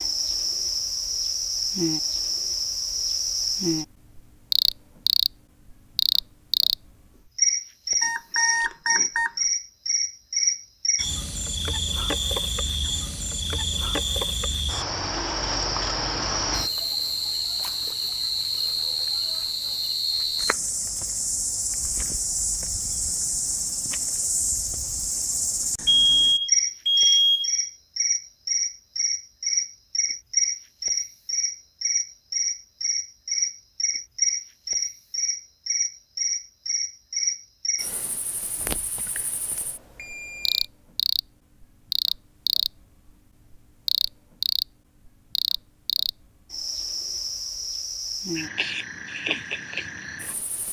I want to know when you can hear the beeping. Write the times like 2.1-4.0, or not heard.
8.0-9.3, 25.9-27.5, 39.1-40.6.